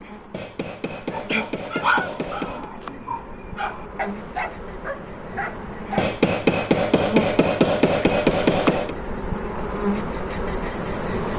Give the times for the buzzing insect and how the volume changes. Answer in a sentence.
The buzzing insect can be heard from 0.0 to 11.3 s, getting louder.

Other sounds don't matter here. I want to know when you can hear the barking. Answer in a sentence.
The barking can be heard from 0.9 to 6.2 s.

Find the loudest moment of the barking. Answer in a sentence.
The volume of the barking peaks at 2 seconds.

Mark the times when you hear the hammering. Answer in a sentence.
You can hear the hammering from 0.3 to 2.7 s and from 6.0 to 8.9 s.